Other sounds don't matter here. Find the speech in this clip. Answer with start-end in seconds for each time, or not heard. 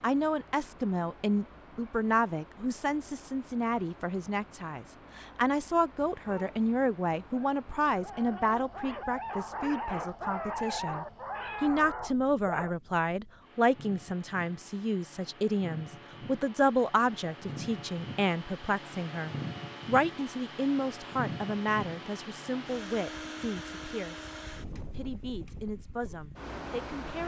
0.0-27.2.